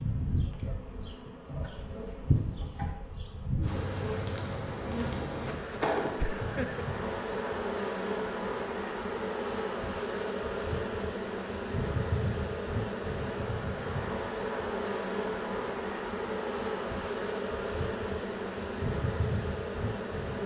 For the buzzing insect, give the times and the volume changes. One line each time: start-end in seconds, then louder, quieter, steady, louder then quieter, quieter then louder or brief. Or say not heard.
0.0-20.4 steady.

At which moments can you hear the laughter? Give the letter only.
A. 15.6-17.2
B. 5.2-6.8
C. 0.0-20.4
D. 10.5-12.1
B.